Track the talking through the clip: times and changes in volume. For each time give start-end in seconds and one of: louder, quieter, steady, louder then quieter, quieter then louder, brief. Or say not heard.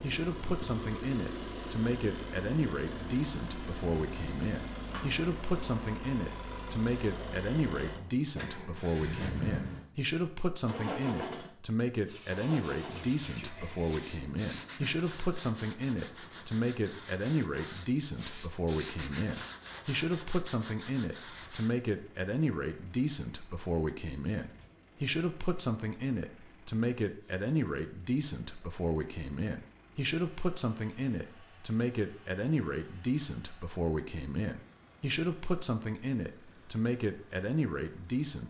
0.0-38.4 steady.